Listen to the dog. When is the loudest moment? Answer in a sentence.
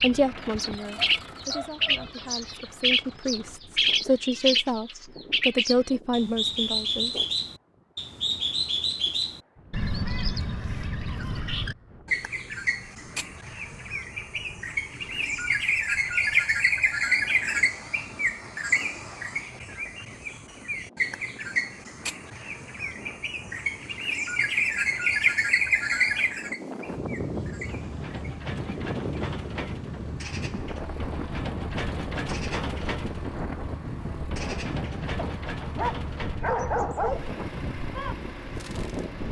The loudest moment of the dog is at 37 seconds.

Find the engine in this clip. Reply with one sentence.
The engine can be heard from 0.0 to 3.6 s and from 27.6 to 39.2 s.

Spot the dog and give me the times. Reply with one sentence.
You can hear the dog from 0.8 to 2.1 s and from 35.1 to 37.3 s.